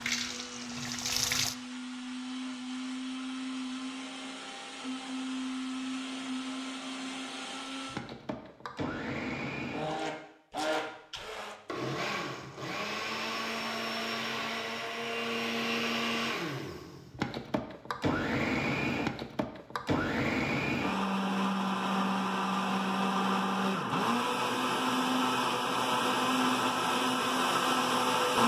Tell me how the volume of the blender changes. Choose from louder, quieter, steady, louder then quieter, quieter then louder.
louder.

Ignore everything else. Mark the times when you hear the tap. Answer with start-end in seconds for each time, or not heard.
0.0-1.6.